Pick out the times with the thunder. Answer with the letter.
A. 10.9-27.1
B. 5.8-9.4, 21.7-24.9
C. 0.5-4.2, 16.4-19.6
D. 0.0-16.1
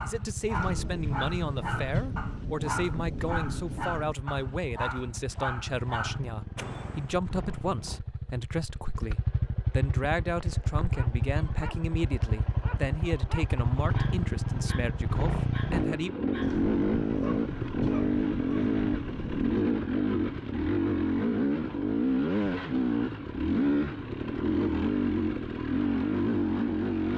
C.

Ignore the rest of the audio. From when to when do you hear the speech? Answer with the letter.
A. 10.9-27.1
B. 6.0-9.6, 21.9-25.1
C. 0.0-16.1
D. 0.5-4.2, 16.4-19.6
C.